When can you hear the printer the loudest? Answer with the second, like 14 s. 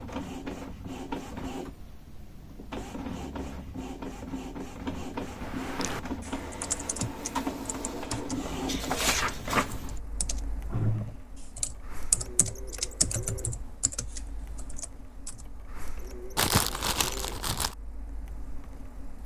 9 s.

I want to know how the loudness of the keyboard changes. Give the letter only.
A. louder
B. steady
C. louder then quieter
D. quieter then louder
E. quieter
C.